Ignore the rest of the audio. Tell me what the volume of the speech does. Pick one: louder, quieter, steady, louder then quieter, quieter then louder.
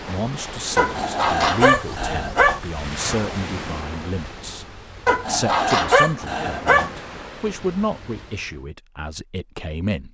steady.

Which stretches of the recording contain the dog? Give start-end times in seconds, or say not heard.
0.8-2.6, 5.0-6.9.